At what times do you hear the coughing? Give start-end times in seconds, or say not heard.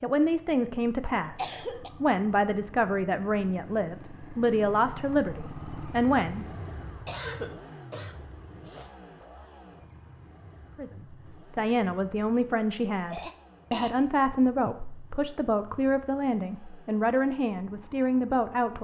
1.1-1.9, 7.0-8.9, 13.1-13.9.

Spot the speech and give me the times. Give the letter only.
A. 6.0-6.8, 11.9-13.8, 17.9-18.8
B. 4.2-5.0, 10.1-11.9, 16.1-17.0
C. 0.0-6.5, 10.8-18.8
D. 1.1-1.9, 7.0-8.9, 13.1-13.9
C.